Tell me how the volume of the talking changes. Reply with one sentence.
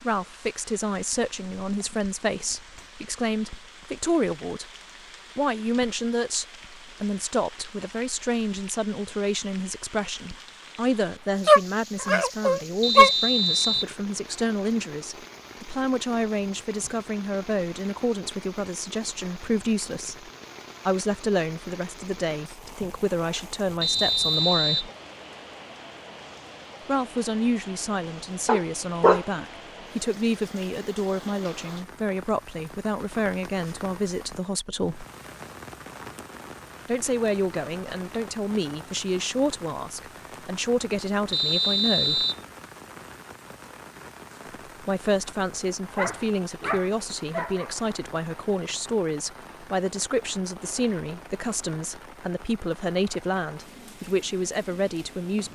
The loudness of the talking stays about the same.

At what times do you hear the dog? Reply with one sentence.
You can hear the dog from 11.4 to 13.1 s, from 28.4 to 29.2 s and from 46.0 to 47.7 s.